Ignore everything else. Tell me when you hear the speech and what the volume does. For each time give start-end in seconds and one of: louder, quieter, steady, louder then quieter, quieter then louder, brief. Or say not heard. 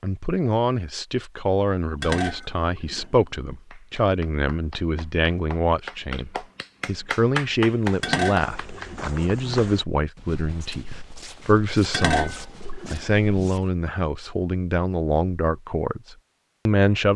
0.0-17.1 steady.